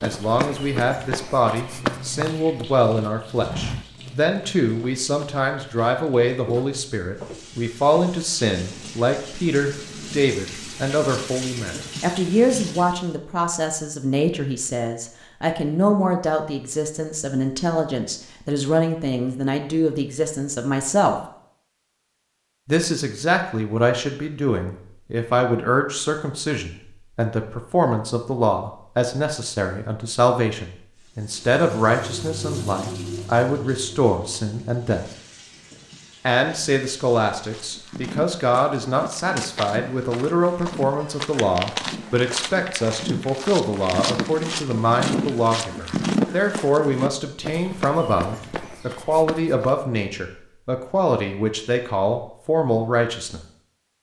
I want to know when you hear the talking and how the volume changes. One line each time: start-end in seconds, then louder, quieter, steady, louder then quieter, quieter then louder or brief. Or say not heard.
0.0-21.2 steady
22.6-35.0 steady
36.2-53.4 steady.